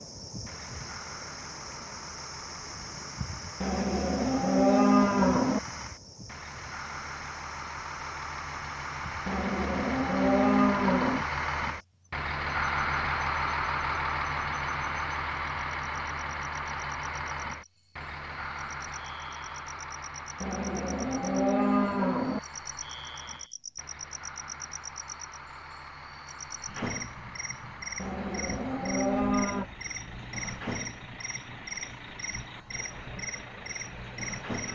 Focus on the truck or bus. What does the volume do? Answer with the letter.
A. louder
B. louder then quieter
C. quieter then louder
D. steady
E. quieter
B.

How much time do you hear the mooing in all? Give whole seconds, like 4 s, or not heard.
8 s.